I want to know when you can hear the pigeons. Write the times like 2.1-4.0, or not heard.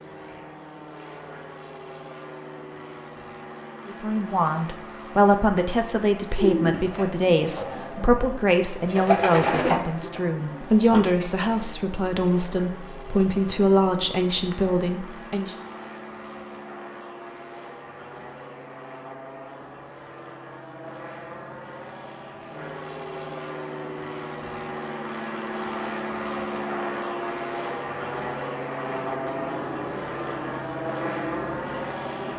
6.3-11.3, 28.9-32.3.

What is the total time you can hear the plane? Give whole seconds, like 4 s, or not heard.
32 s.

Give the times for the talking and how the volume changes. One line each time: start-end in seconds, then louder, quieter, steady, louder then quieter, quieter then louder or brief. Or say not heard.
3.9-15.6 steady.